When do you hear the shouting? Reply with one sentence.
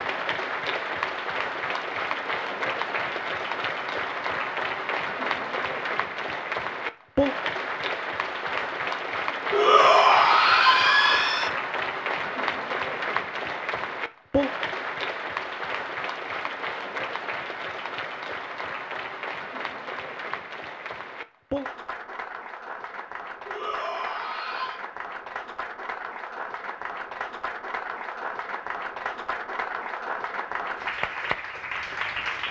You can hear the shouting from 9.5 to 11.5 s and from 23.4 to 24.8 s.